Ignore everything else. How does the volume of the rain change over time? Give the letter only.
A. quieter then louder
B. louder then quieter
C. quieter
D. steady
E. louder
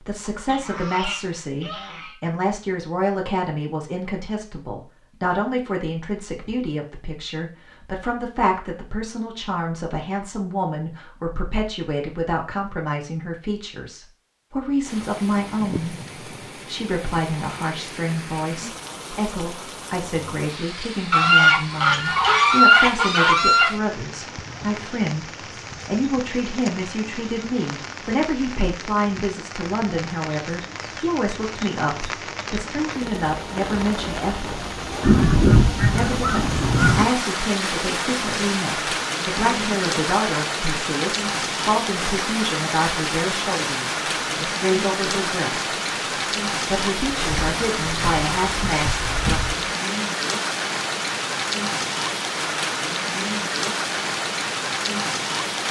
E.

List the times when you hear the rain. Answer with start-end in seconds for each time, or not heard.
14.8-55.6.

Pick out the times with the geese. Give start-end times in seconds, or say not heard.
0.5-2.1, 21.1-23.7, 35.0-37.0, 47.0-49.5.